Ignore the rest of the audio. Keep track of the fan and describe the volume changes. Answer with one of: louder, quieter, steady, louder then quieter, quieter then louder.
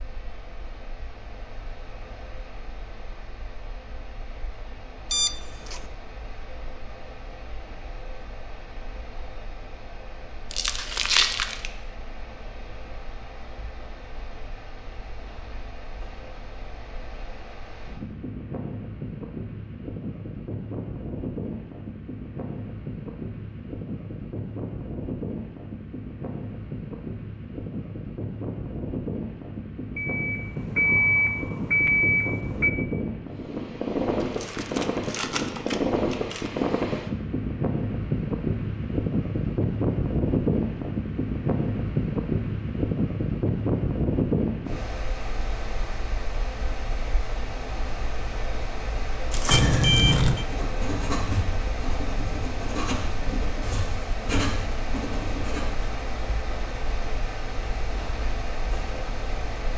louder then quieter.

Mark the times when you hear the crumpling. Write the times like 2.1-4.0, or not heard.
10.5-11.7, 34.2-36.5, 49.3-50.3.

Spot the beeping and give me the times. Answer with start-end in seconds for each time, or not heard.
5.1-5.8, 29.9-32.8, 49.5-50.5.